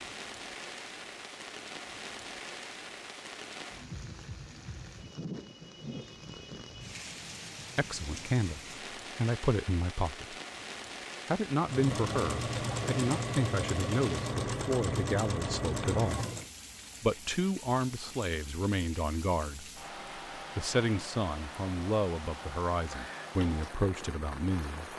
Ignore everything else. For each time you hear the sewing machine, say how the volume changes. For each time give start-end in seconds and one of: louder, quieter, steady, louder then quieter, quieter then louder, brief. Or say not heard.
11.6-16.5 steady.